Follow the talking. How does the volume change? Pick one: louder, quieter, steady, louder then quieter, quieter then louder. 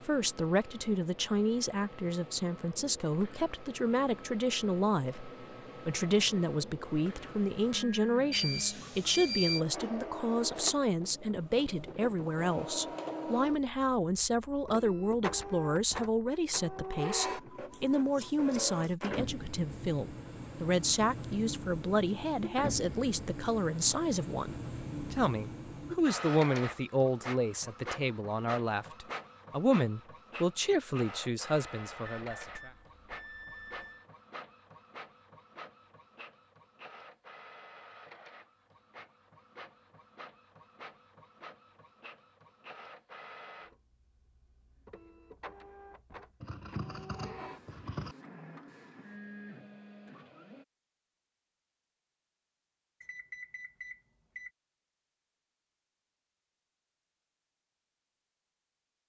steady.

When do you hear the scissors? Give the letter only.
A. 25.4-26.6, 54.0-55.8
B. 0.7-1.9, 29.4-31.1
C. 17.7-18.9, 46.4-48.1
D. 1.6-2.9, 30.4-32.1
C.